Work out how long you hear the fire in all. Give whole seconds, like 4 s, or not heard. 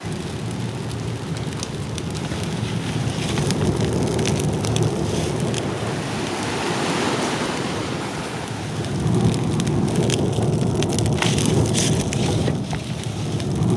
14 s.